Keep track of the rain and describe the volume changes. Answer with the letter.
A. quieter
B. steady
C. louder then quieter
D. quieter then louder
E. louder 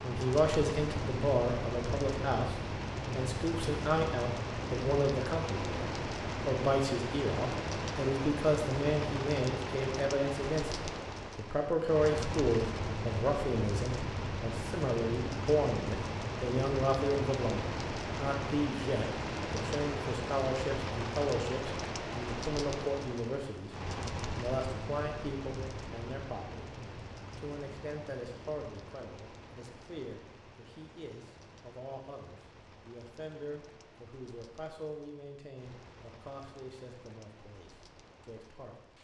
A.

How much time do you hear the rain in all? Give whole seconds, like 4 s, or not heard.
39 s.